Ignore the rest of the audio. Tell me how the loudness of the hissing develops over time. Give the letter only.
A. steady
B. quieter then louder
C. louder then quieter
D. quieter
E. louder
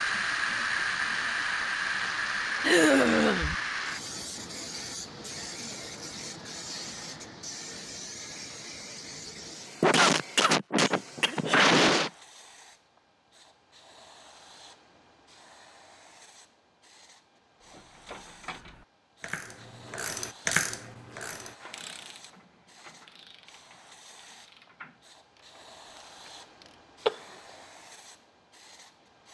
D.